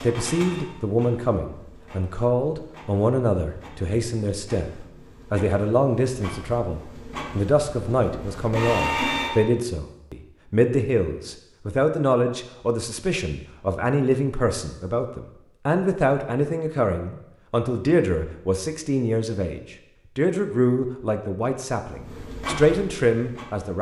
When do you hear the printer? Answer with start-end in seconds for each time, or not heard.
0.0-9.4, 21.9-23.7.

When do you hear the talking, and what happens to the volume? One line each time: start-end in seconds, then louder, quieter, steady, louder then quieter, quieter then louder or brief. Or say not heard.
0.0-23.7 steady.